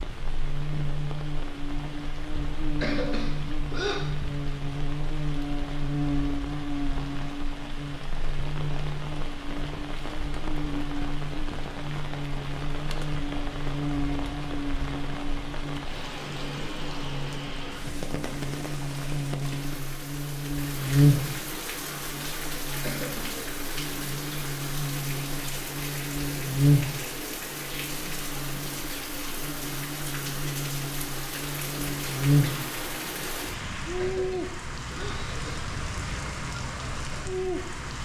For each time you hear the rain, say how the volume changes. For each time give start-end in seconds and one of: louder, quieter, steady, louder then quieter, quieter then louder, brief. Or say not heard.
0.0-38.0 louder.